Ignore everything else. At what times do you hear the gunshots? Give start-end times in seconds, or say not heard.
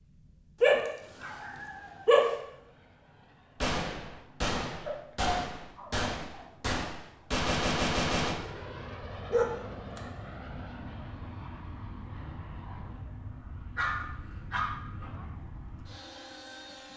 3.6-8.3.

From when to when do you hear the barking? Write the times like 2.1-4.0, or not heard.
0.6-2.3, 4.8-6.5, 9.3-10.0, 13.8-15.2.